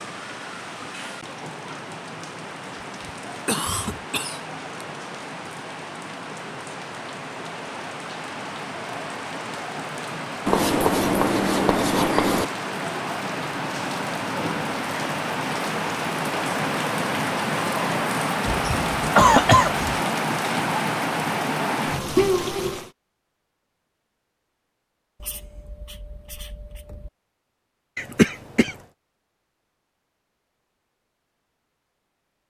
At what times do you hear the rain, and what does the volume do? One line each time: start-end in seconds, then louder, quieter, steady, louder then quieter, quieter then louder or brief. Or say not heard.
0.0-22.9 louder.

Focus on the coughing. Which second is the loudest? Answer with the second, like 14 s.
19 s.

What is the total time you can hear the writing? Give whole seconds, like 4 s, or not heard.
4 s.